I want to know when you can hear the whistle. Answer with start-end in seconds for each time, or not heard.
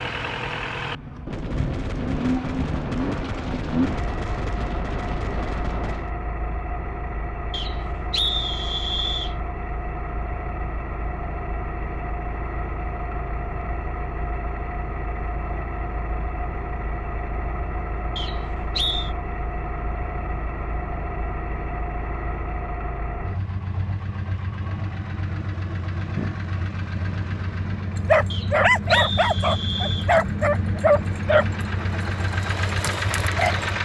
7.5-9.3, 18.1-19.1, 28.3-30.1.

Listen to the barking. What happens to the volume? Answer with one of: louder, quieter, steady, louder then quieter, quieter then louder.
quieter.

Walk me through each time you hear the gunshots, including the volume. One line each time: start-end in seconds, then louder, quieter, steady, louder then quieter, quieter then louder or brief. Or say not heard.
1.2-6.1 steady.